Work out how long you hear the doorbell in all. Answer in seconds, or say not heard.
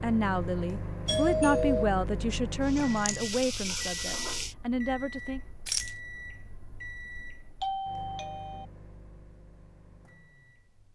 2 s.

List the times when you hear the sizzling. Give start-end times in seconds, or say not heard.
2.6-4.5.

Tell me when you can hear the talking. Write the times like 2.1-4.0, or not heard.
0.0-5.4.